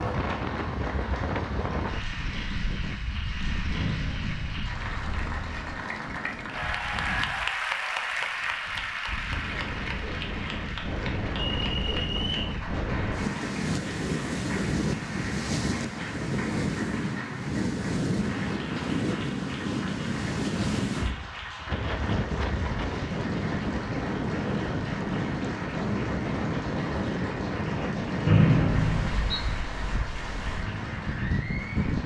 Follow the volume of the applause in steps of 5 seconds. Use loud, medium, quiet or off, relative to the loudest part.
medium, loud, medium, medium, medium, medium, medium.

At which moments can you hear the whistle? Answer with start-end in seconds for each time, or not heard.
3.8-4.8, 11.6-12.6, 28.2-29.4.